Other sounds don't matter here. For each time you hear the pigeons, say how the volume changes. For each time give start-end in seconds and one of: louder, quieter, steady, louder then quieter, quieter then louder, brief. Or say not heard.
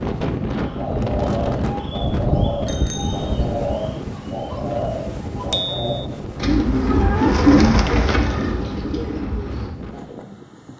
0.6-10.2 louder then quieter.